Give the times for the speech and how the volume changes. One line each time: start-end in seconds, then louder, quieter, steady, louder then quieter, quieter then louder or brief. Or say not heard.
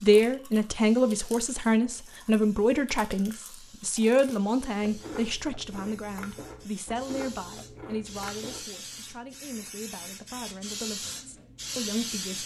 0.0-12.4 quieter.